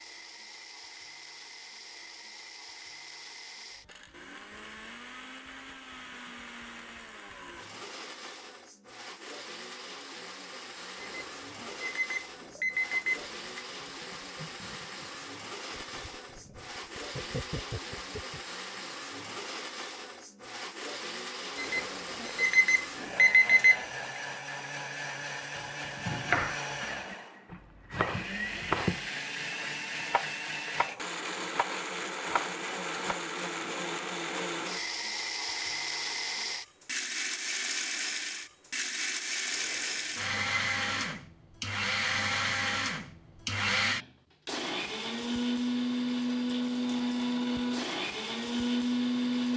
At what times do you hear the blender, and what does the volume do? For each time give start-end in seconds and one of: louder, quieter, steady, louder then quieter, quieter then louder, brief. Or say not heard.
0.0-49.5 louder.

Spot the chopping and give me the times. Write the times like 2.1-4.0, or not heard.
25.6-33.2.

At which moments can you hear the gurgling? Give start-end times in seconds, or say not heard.
12.9-18.4.